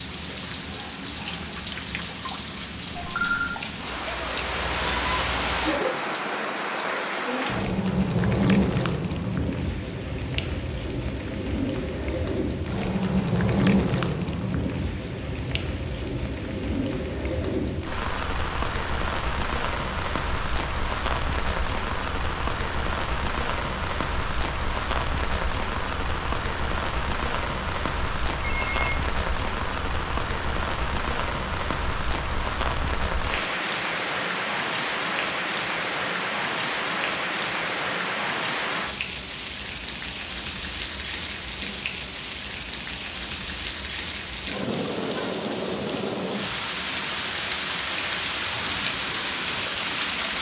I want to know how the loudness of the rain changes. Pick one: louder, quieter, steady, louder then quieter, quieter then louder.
steady.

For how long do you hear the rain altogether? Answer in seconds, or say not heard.
50 s.